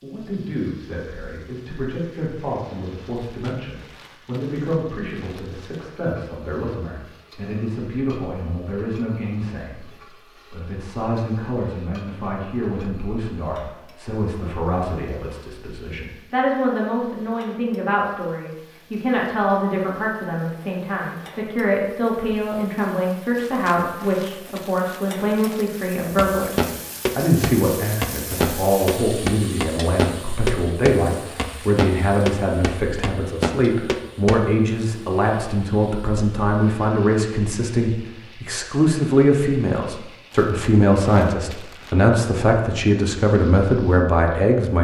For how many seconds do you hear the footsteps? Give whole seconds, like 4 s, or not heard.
8 s.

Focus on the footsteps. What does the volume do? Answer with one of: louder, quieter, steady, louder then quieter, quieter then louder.
steady.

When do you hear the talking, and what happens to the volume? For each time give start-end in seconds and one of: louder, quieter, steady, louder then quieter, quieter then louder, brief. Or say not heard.
0.0-44.7 louder.